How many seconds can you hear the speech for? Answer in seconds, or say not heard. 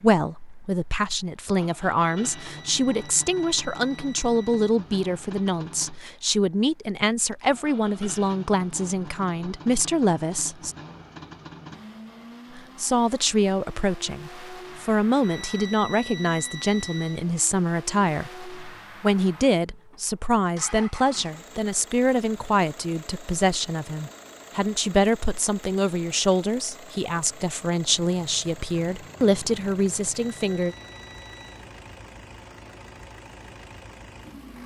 29 s.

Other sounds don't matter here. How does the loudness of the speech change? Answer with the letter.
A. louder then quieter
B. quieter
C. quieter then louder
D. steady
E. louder
D.